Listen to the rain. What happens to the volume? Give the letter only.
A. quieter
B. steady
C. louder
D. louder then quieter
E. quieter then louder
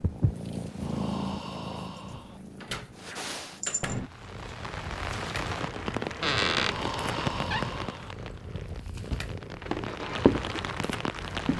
E.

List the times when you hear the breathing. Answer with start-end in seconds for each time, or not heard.
0.8-2.4, 6.5-8.2.